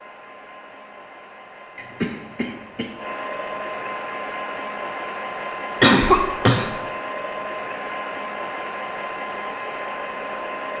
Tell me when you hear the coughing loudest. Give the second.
6 s.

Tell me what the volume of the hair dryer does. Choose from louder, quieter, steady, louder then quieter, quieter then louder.
louder.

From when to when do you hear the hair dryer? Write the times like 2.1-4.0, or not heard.
0.0-10.7.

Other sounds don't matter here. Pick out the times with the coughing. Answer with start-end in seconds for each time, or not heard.
1.8-2.9, 5.8-6.7.